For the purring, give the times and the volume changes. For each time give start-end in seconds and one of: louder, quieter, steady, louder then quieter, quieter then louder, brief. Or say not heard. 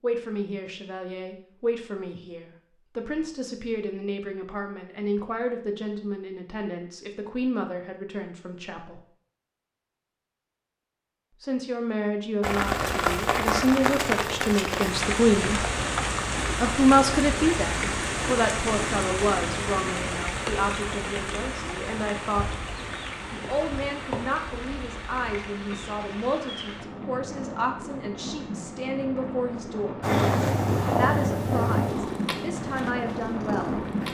30.0-34.0 quieter.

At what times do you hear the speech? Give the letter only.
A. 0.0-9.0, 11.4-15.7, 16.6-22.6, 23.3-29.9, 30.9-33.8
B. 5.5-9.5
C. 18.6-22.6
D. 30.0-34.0
A.